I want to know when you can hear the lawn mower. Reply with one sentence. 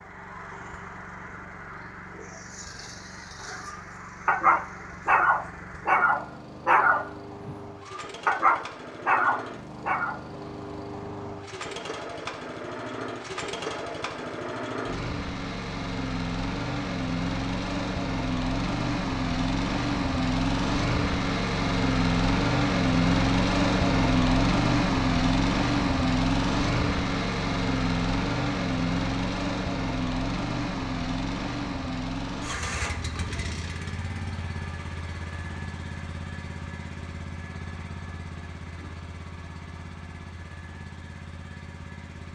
You can hear the lawn mower from 0.0 to 42.3 s.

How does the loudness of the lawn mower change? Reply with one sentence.
The loudness of the lawn mower goes up, then down.